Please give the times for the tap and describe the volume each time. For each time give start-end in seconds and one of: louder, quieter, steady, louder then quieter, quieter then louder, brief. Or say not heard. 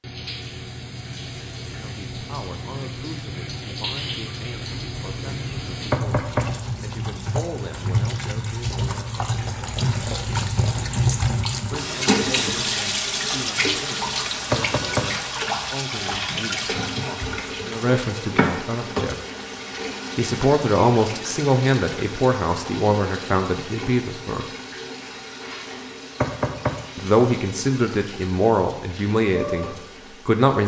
0.0-30.6 louder then quieter.